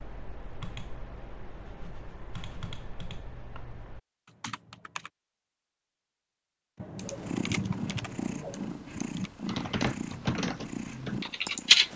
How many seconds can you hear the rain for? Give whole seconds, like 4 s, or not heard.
not heard.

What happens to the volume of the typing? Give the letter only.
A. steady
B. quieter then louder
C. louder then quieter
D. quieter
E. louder
E.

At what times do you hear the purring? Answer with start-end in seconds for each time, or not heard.
7.0-11.9.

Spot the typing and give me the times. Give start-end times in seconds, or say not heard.
0.0-5.1, 6.8-11.9.